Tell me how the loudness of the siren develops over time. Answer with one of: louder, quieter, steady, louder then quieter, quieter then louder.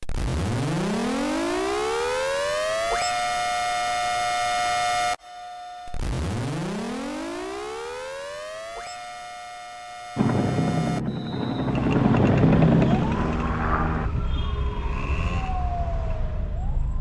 quieter.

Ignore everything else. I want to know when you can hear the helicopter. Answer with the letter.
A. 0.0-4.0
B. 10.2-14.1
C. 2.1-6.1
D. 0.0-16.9
B.